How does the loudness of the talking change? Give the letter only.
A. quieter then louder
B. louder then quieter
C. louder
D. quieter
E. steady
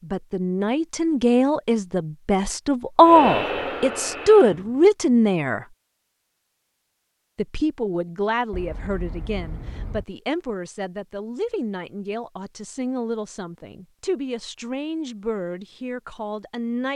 D.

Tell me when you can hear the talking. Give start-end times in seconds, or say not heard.
0.0-5.7, 7.3-16.9.